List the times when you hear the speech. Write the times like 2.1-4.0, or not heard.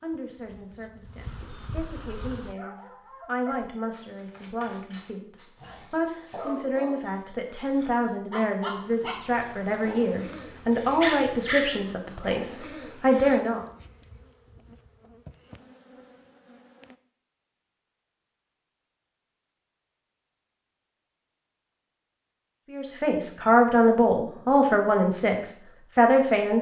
0.0-13.6, 22.7-26.5.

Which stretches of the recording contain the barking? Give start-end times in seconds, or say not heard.
2.1-13.4.